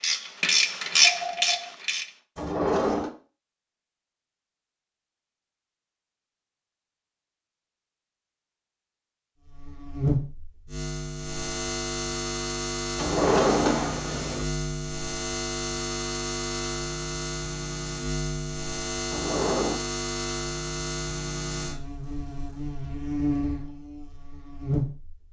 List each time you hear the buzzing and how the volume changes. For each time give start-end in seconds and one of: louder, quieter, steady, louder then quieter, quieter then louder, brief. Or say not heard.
9.4-25.2 steady.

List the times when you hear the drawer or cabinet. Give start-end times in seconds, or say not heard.
2.4-3.1, 12.9-14.4, 19.1-19.8.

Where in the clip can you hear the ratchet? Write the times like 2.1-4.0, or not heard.
0.0-2.1.